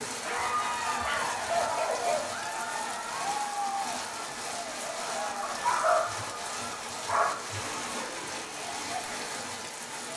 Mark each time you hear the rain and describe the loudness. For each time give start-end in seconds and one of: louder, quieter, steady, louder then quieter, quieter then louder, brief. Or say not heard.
0.0-10.1 steady.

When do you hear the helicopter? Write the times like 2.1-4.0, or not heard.
not heard.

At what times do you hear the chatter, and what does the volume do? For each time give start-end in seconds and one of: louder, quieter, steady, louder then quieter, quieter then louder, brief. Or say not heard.
0.1-10.1 quieter.